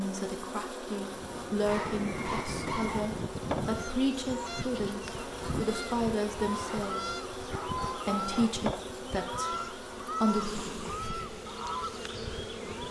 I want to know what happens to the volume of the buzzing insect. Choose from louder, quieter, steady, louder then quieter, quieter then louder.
steady.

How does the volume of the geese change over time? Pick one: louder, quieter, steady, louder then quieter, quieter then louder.
steady.